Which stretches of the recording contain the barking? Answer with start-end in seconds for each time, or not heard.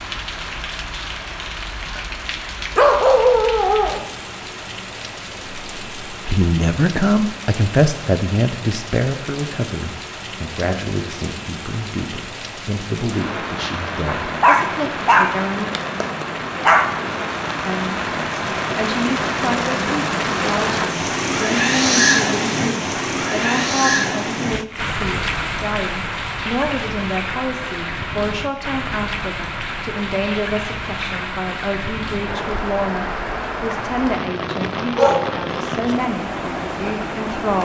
2.8-4.0, 14.2-16.9, 35.0-36.0.